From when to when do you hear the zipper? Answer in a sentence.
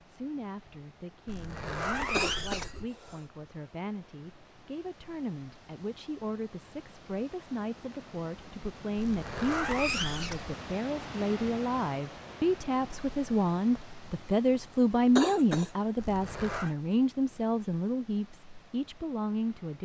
You can hear the zipper from 1.2 to 2.9 s, from 8.9 to 10.6 s and from 15.9 to 16.8 s.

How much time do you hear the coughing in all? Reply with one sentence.
You can hear the coughing for 2 seconds altogether.